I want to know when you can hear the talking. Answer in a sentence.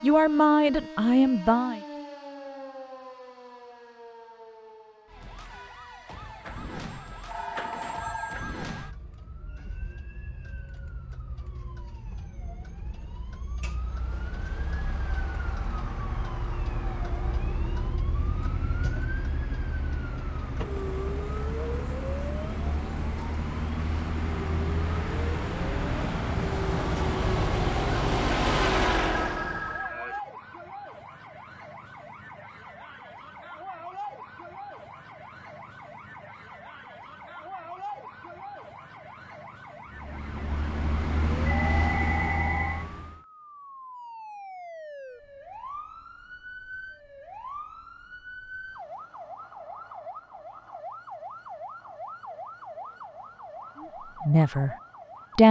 The talking can be heard from 0.0 to 1.8 s and from 54.2 to 54.8 s.